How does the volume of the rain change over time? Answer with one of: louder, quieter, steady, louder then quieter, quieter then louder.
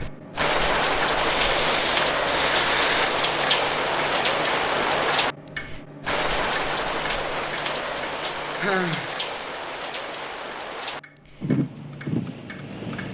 quieter.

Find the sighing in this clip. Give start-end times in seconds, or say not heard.
1.1-3.1, 8.6-9.2.